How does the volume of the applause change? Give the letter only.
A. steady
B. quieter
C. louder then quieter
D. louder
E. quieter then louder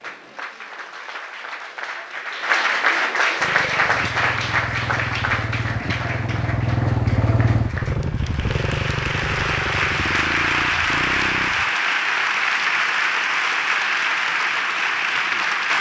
E.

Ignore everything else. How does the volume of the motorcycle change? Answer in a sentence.
The volume of the motorcycle goes up, then down.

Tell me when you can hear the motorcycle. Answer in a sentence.
The motorcycle can be heard from 3.4 to 11.7 s.